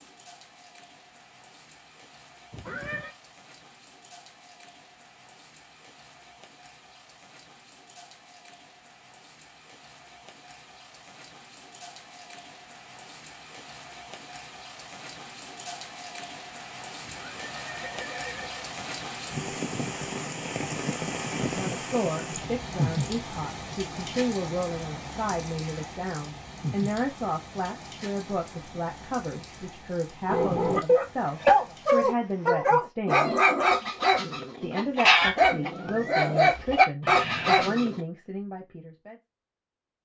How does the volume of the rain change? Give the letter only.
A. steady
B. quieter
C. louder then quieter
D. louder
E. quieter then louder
C.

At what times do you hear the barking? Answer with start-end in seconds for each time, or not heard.
30.2-38.0.